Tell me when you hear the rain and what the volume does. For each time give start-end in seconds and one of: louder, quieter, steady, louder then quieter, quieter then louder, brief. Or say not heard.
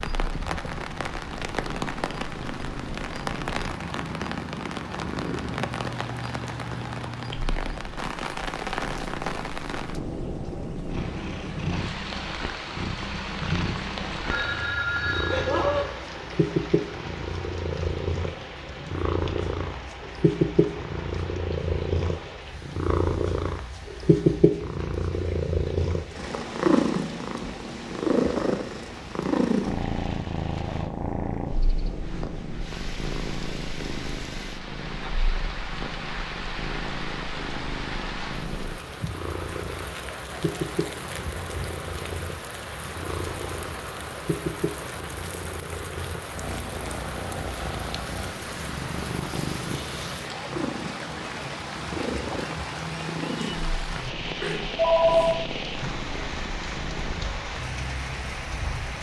0.0-58.9 quieter then louder.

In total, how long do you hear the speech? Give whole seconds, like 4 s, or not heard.
not heard.